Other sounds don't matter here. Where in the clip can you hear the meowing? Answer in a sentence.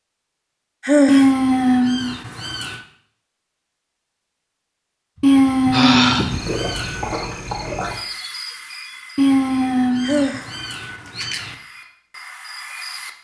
The meowing can be heard from 1.1 to 2.8 s, from 5.2 to 7.1 s and from 9.2 to 11.6 s.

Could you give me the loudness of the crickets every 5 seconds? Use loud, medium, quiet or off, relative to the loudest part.
off, loud, medium.